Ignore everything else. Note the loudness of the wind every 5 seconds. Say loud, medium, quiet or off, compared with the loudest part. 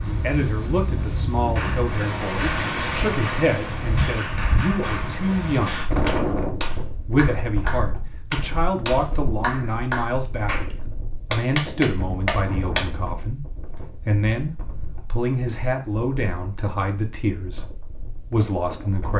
loud, loud, medium, quiet.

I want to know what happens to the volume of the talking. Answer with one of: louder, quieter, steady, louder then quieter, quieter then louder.
steady.